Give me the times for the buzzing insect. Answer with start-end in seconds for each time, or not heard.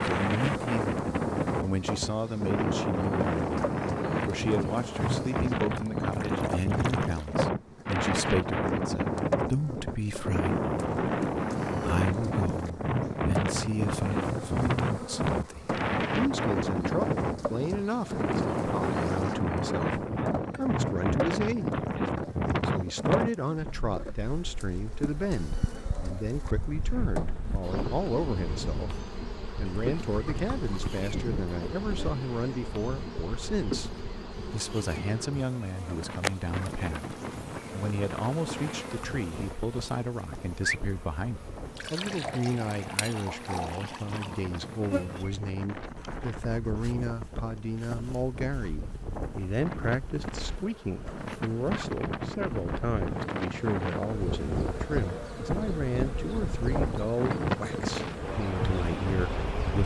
0.0-59.8.